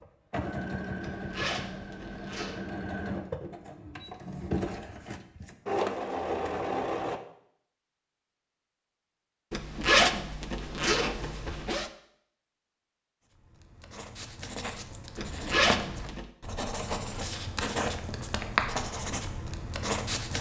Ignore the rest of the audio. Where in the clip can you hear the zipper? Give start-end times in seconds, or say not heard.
1.0-2.5, 9.5-11.9, 15.2-16.2.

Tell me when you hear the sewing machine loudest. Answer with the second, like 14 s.
6 s.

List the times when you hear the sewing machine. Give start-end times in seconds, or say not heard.
0.0-7.2.